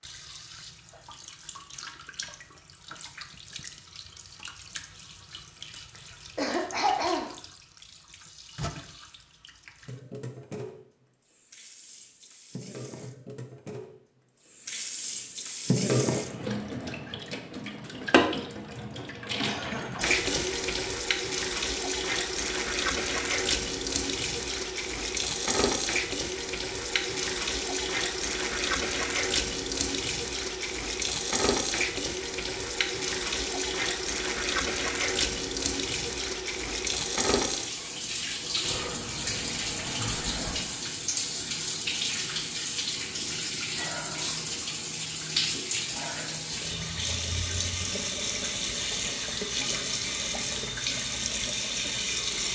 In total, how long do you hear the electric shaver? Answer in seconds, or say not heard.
not heard.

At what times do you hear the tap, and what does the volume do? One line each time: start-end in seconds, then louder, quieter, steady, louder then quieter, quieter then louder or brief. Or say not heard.
0.0-52.4 louder.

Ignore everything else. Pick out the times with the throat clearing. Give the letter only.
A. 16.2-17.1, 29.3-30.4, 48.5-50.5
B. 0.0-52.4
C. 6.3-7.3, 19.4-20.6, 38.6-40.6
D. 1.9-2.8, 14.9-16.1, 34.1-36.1
C.